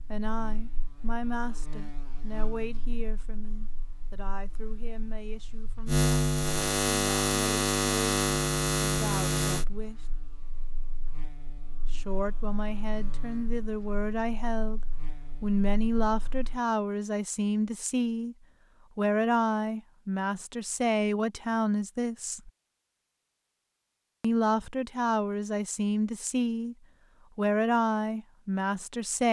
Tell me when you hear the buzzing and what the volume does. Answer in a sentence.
You can hear the buzzing from 0.0 to 16.6 s, getting louder then quieter.